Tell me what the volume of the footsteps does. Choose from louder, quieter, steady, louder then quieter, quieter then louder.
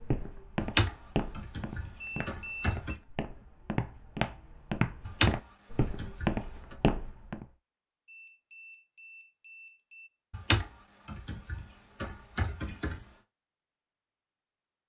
quieter then louder.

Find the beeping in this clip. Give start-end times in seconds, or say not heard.
2.0-2.8, 8.1-10.1.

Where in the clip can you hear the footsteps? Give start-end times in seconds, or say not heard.
0.0-7.5.